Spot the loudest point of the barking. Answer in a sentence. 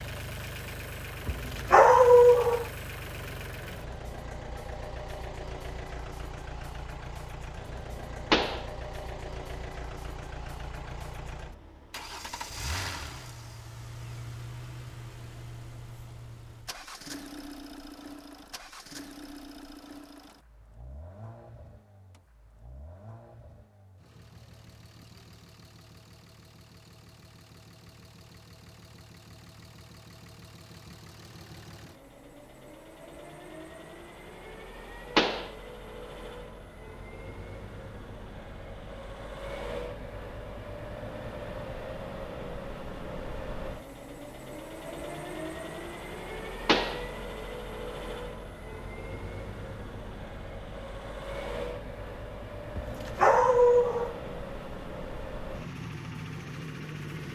The loudest moment of the barking is at 2 seconds.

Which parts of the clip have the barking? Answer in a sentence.
The barking can be heard from 1.2 to 2.6 s and from 52.8 to 54.1 s.